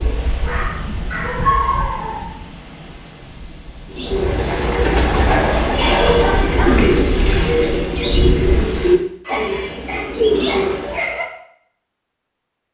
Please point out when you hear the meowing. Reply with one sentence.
The meowing can't be heard in this clip.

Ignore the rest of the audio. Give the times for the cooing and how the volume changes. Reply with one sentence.
You can hear the cooing from 3.9 to 11.1 s, at a steady volume.